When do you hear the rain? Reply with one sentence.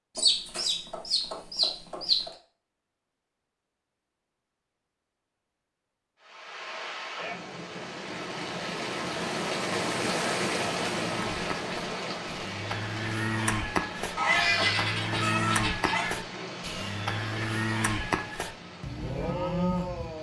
The rain can be heard from 6.2 to 20.1 s.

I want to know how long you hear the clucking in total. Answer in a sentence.
The clucking can be heard for 4 seconds in total.